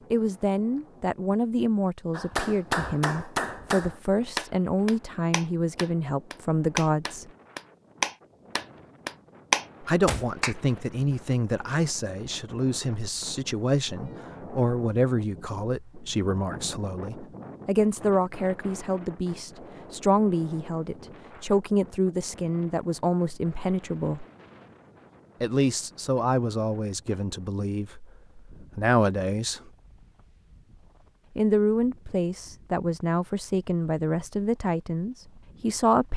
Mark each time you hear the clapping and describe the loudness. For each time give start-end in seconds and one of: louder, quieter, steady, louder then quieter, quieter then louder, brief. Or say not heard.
2.1-10.6 louder.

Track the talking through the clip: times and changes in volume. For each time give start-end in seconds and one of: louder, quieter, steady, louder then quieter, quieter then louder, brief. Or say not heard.
0.1-7.3 steady
9.8-24.2 steady
25.4-29.6 quieter then louder
31.4-36.1 steady.